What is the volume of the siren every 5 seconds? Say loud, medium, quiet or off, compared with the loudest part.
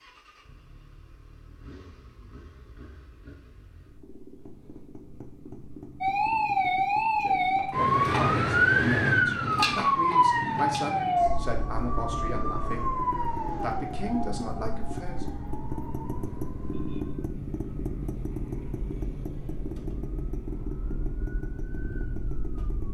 off, loud, medium, quiet, quiet.